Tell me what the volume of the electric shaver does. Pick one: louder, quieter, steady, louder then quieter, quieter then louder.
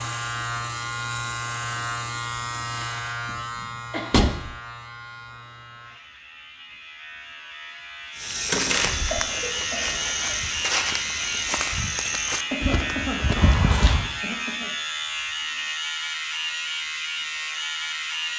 quieter then louder.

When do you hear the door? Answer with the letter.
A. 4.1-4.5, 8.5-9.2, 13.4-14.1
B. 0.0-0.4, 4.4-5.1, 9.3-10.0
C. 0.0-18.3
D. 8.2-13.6
A.